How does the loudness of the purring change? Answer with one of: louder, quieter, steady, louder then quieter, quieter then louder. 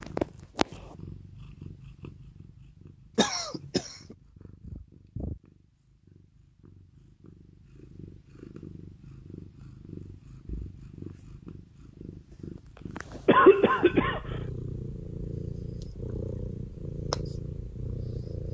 quieter then louder.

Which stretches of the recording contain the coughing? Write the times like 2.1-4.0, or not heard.
3.1-4.0, 13.2-14.3.